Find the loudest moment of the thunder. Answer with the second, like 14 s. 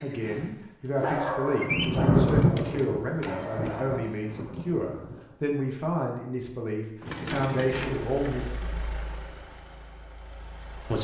2 s.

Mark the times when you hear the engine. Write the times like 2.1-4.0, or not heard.
7.0-10.9.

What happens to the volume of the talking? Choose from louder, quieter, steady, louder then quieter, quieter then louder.
steady.